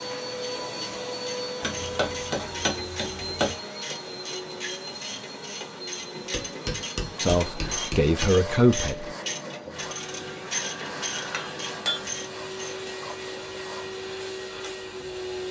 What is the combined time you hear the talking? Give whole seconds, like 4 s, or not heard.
2 s.